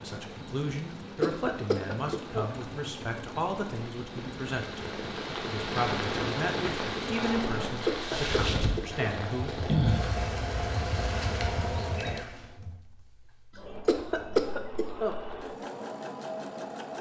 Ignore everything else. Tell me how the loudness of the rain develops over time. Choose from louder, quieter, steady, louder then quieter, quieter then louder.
louder.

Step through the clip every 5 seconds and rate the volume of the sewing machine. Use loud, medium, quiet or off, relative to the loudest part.
medium, loud, loud, loud.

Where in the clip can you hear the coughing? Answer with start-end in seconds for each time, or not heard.
1.2-2.5, 7.8-9.1, 13.8-15.2.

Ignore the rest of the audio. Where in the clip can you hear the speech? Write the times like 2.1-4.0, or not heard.
0.0-9.6.